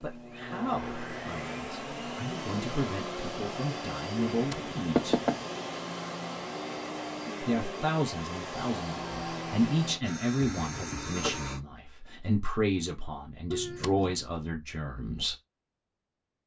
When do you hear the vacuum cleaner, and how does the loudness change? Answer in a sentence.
The vacuum cleaner can be heard from 0.0 to 11.6 s, at a steady volume.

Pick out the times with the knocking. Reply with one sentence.
You can hear the knocking from 4.3 to 5.5 s and from 13.5 to 14.2 s.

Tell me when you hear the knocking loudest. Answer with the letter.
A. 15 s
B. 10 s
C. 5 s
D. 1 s
C.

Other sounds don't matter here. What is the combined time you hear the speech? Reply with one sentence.
The speech can be heard for 13 seconds in total.